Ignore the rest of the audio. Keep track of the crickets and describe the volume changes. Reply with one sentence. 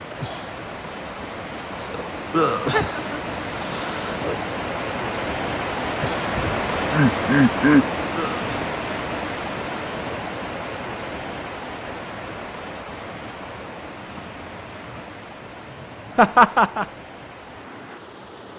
The volume of the crickets goes down.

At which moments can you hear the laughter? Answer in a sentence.
You can hear the laughter from 2.7 to 3.2 s, from 6.3 to 7.9 s and from 16.1 to 16.9 s.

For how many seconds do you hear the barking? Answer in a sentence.
You can't hear the barking here.